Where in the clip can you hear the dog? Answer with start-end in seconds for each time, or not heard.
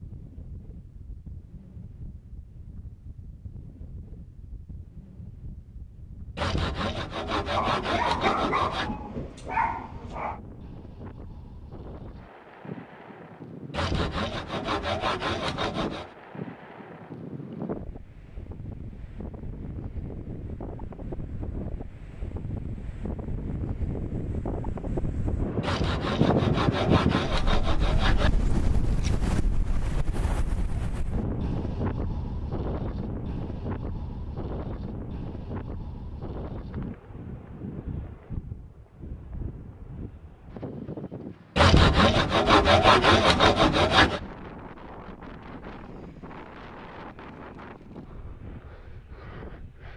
7.5-10.4.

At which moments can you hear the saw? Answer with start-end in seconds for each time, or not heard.
6.3-8.9, 13.7-16.1, 25.6-28.4, 41.5-44.2.